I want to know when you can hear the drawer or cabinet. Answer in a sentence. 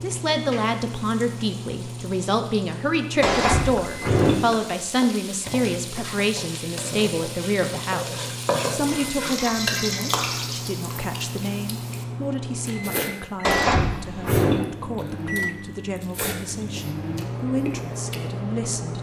You can hear the drawer or cabinet from 3.2 to 4.4 s and from 13.4 to 14.7 s.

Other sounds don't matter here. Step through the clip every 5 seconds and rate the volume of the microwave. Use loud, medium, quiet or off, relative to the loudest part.
loud, medium, loud, loud.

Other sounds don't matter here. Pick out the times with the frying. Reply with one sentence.
The frying can be heard from 0.0 to 10.8 s.